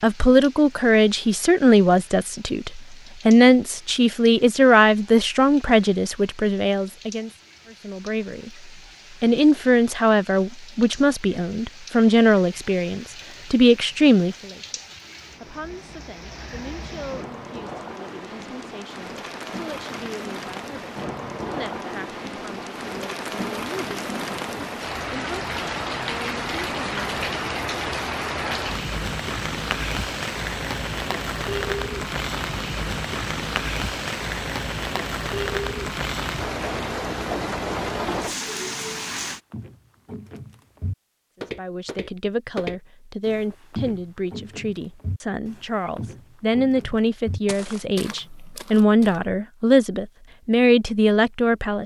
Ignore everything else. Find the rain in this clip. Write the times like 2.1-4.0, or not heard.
0.0-39.4.